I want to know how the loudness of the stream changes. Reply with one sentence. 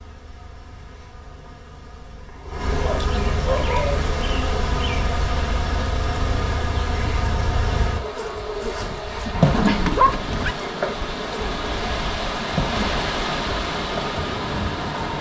The volume of the stream goes up.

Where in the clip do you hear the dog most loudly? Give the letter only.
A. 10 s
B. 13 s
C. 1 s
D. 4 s
A.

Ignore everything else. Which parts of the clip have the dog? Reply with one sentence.
You can hear the dog from 2.8 to 4.0 s and from 9.3 to 10.6 s.